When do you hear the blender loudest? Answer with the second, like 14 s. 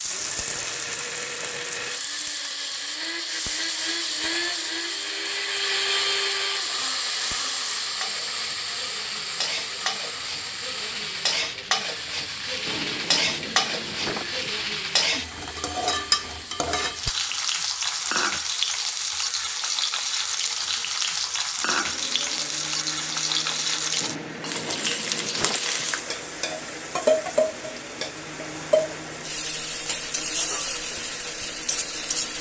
6 s.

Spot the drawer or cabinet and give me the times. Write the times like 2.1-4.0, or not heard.
12.7-14.6, 24.0-25.9.